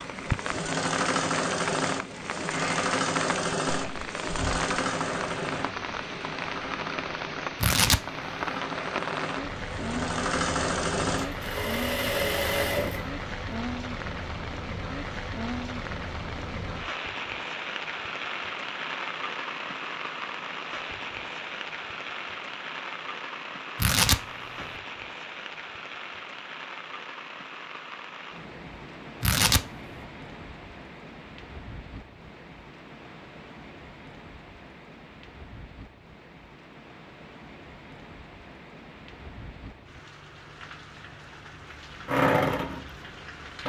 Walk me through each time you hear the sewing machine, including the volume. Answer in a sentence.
The sewing machine can be heard from 0.0 to 13.1 s, getting quieter then louder; and briefly from 42.0 to 43.6 s.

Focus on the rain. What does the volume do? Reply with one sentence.
The volume of the rain goes down.